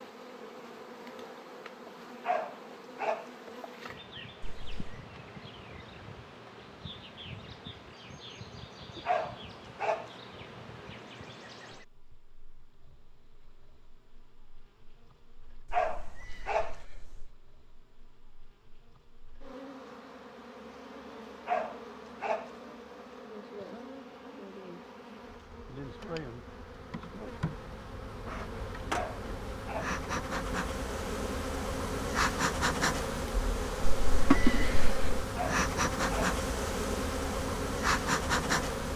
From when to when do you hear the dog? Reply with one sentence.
You can hear the dog from 2.2 to 3.3 s, from 9.1 to 10.1 s, from 15.7 to 16.8 s, from 21.4 to 22.5 s, from 28.9 to 29.9 s and from 35.4 to 36.4 s.